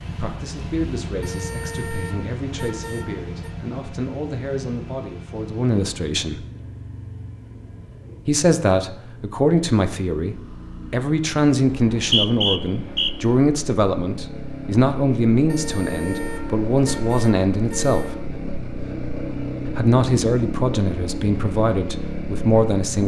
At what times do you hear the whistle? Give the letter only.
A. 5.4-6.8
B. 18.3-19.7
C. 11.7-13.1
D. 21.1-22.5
C.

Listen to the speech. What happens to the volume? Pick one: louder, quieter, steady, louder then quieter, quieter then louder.
louder.